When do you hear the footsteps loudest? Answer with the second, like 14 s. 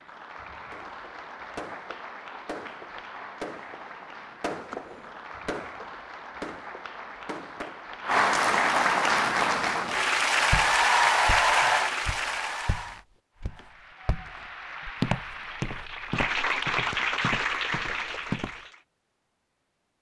15 s.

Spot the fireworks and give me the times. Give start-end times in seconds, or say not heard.
0.7-8.0.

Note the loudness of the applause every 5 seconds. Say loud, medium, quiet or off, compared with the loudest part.
quiet, loud, loud, medium.